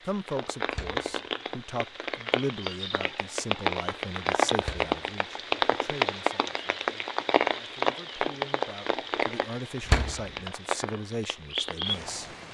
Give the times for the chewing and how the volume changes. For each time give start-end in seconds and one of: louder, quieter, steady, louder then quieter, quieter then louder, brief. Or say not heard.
not heard.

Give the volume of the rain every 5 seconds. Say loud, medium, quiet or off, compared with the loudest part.
loud, loud, medium.